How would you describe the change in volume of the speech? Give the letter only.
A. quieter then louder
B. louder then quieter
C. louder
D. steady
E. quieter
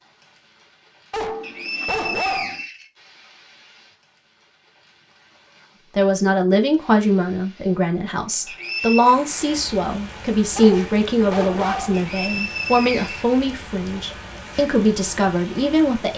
D.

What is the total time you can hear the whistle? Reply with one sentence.
You can hear the whistle for 4 seconds altogether.